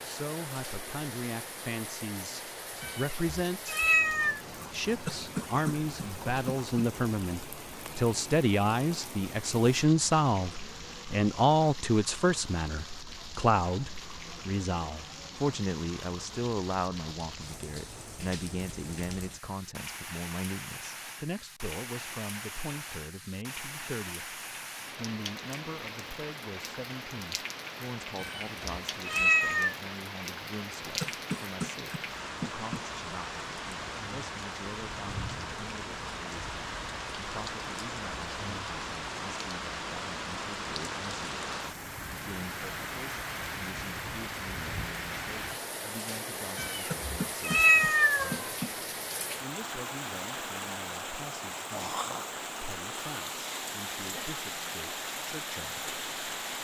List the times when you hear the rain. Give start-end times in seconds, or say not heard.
0.0-56.5.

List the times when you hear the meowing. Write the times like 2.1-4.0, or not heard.
2.8-4.4, 28.2-29.8, 46.5-48.5.